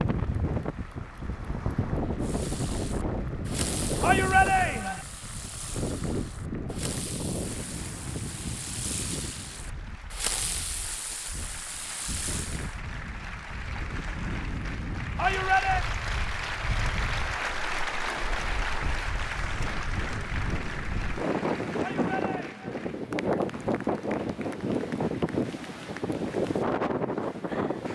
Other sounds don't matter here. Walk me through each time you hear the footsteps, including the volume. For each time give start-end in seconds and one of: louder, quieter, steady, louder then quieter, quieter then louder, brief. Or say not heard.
not heard.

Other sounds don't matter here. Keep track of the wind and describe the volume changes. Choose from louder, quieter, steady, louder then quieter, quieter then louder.
quieter then louder.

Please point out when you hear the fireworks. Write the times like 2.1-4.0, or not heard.
2.2-12.8.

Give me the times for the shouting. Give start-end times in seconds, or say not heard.
4.0-5.0, 15.2-15.8, 21.8-22.8.